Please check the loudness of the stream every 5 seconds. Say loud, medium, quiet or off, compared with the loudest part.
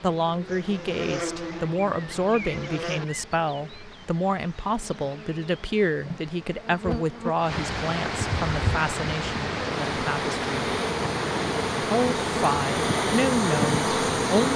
quiet, loud, loud.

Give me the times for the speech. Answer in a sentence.
The speech can be heard from 0.0 to 10.7 s and from 11.8 to 14.5 s.